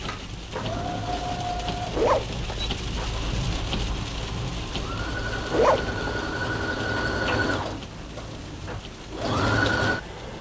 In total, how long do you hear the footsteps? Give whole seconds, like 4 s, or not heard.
not heard.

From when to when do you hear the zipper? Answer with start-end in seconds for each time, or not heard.
1.9-2.7, 5.5-6.2.